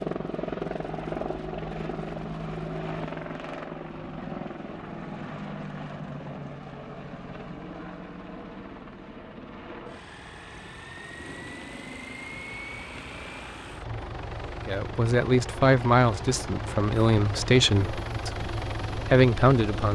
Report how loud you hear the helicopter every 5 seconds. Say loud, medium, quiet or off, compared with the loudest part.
loud, medium, medium, loud.